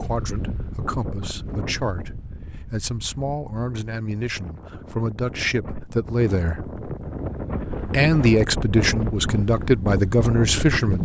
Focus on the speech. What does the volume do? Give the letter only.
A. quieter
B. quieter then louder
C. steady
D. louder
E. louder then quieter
D.